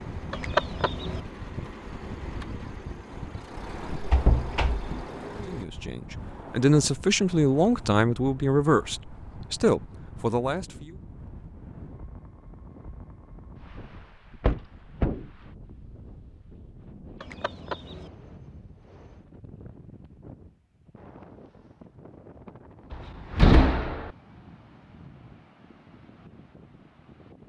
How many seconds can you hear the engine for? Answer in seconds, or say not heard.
6 s.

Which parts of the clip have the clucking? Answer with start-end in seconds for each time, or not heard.
0.3-1.2, 17.2-18.1.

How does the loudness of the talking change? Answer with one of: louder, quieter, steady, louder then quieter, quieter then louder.
steady.